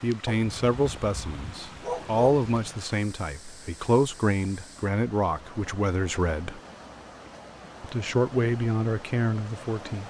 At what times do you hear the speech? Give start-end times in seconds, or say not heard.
0.0-6.6, 7.8-10.0.